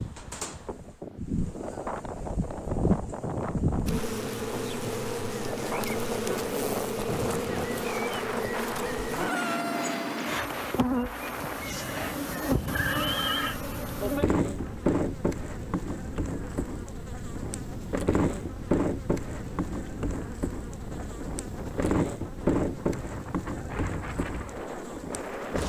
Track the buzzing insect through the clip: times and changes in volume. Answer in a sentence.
You can hear the buzzing insect from 0.0 to 25.6 s, at a steady volume.